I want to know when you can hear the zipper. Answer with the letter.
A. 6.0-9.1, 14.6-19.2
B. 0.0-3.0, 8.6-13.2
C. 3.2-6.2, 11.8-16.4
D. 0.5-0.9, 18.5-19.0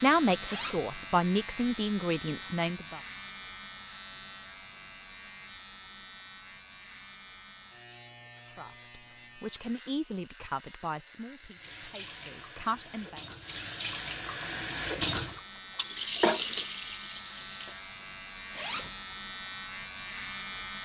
D.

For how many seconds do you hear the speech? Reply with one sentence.
You can hear the speech for 8 seconds altogether.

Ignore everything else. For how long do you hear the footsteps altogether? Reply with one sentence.
The footsteps can't be heard in this clip.